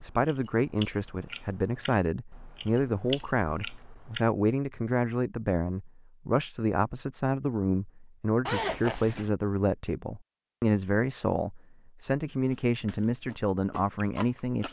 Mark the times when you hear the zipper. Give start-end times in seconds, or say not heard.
8.4-9.3.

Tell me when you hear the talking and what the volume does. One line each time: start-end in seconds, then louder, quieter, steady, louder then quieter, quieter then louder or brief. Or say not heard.
0.0-14.6 steady.